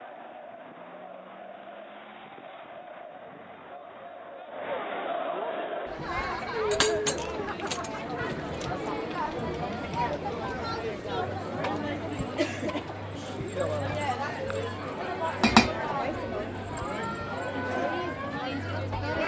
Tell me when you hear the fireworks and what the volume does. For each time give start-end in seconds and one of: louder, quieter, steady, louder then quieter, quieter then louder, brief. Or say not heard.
not heard.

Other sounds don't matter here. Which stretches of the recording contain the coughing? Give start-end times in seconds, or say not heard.
not heard.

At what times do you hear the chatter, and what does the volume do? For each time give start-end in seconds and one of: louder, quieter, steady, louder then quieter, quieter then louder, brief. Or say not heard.
0.0-19.2 louder.